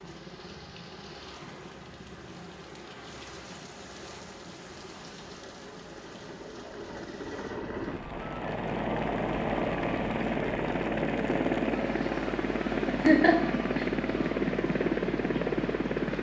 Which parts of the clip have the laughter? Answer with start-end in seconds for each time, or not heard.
12.9-13.8.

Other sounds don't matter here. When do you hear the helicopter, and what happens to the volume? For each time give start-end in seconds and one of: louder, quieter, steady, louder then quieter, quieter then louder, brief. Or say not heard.
0.0-16.1 louder.